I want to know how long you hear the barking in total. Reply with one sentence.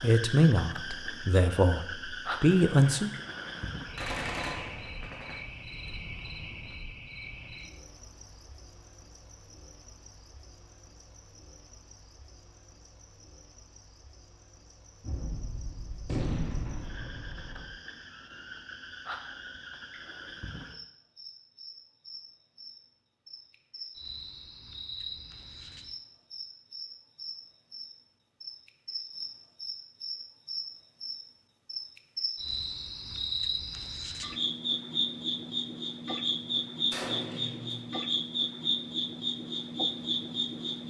The barking can't be heard in this clip.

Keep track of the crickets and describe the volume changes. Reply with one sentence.
The volume of the crickets goes down, then up.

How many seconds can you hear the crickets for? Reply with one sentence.
You can hear the crickets for 41 seconds altogether.